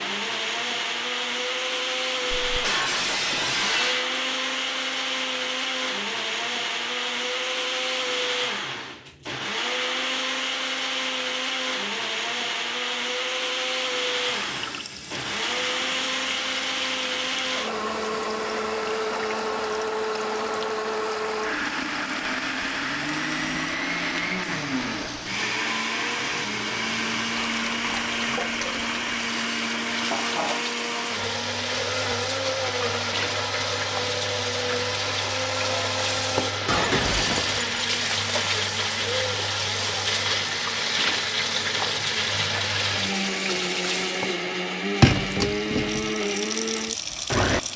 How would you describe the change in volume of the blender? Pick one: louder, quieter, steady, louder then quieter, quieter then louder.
steady.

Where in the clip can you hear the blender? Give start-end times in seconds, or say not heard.
0.0-47.7.